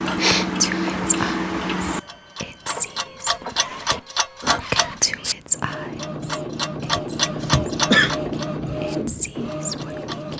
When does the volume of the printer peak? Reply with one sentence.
The volume of the printer peaks at 8 seconds.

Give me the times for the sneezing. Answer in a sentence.
The sneezing can be heard from 0.1 to 1.4 s and from 7.0 to 8.2 s.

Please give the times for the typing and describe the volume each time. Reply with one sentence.
You can't hear the typing here.